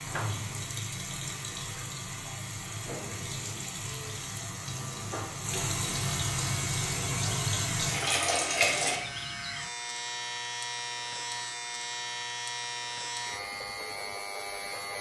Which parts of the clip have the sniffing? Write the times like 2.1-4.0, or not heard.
not heard.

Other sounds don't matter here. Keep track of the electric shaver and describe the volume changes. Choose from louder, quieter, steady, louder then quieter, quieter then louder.
louder.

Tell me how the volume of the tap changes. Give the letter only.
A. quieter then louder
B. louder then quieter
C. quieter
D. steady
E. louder
E.